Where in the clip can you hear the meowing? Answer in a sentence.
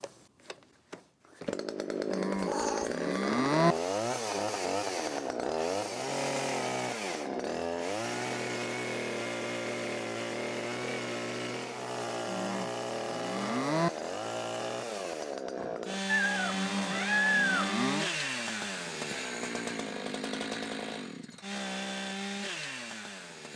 You can hear the meowing from 2.4 to 2.9 s and from 16.1 to 17.8 s.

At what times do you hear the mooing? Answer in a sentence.
You can hear the mooing from 2.1 to 3.8 s, from 12.2 to 13.9 s and from 16.5 to 18.1 s.